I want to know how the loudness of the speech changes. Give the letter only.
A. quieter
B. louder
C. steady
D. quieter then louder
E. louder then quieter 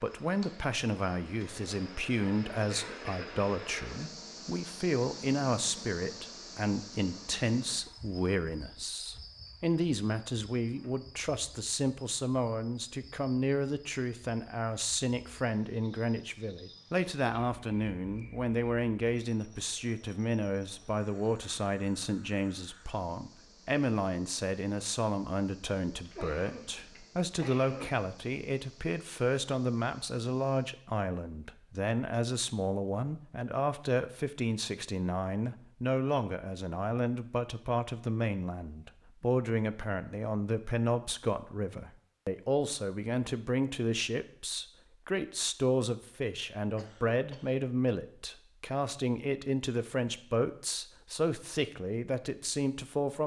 C.